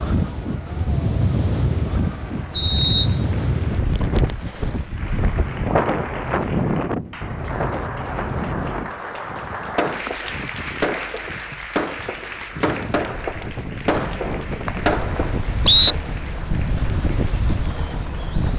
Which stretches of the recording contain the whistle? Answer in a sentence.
You can hear the whistle from 2.5 to 3.2 s and from 13.9 to 15.9 s.